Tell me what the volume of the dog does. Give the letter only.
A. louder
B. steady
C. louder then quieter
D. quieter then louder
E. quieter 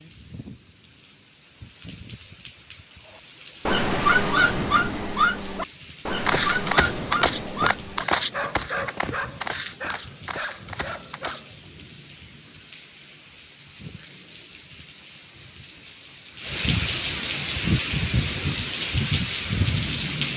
E.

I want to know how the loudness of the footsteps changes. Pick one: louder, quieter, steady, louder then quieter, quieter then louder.
quieter.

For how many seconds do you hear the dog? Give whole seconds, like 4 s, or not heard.
8 s.